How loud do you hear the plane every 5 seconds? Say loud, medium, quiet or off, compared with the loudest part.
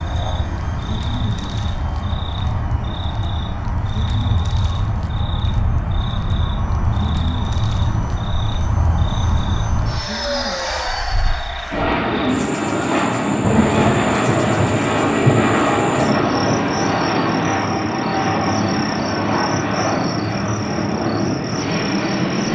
medium, medium, loud, loud, loud.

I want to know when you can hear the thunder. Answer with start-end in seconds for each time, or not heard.
13.4-16.9.